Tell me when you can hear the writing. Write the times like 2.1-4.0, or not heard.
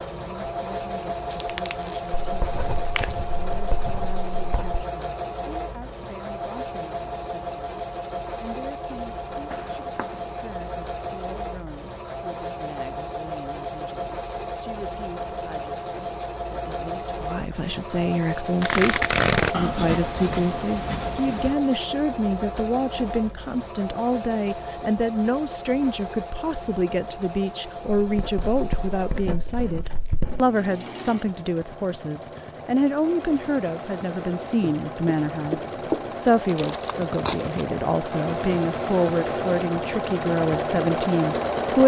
2.2-4.8, 9.5-11.1, 19.5-21.6, 28.1-30.4, 34.6-36.1.